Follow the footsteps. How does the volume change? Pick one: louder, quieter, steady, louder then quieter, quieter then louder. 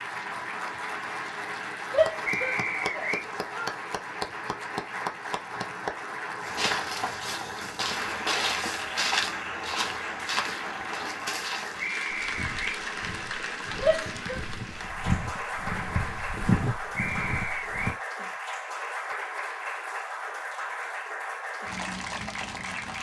quieter then louder.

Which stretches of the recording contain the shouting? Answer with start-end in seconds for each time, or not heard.
1.9-3.7, 13.8-14.4.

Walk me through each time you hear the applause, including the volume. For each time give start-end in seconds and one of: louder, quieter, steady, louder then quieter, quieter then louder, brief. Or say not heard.
0.0-22.9 steady.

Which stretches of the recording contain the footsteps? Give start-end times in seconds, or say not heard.
6.4-17.9.